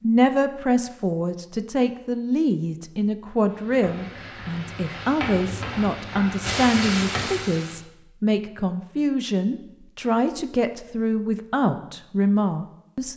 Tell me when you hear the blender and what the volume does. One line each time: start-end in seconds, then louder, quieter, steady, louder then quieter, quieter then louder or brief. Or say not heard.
not heard.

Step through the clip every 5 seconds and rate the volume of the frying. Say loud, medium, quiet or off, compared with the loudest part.
medium, loud, off.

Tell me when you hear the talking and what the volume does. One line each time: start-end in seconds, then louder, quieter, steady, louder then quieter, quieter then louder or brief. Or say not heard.
0.0-13.1 steady.